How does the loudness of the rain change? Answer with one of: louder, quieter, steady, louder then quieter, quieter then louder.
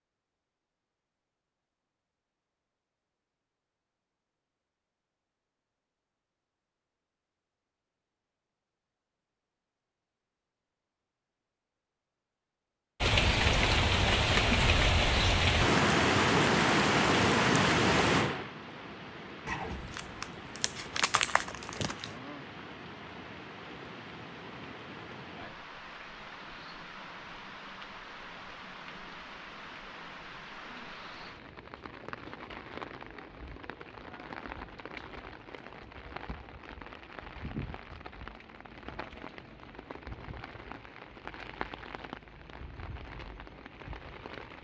quieter.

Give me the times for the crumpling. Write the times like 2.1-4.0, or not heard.
19.4-22.1.